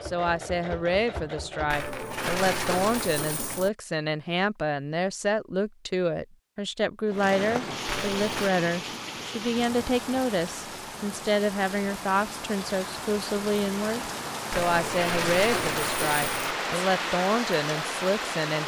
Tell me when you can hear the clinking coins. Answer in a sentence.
You can hear the clinking coins from 1.7 to 3.7 s, from 7.8 to 8.5 s and from 14.5 to 16.6 s.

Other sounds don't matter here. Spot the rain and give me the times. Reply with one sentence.
The rain can be heard from 7.0 to 18.6 s.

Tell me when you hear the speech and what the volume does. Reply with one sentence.
You can hear the speech from 0.0 to 18.6 s, at a steady volume.